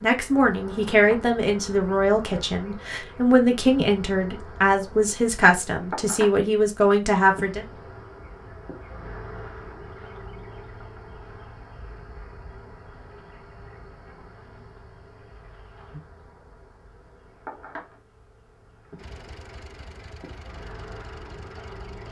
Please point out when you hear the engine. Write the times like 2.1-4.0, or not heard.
18.9-22.0.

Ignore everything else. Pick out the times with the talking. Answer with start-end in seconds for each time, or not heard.
0.0-7.7.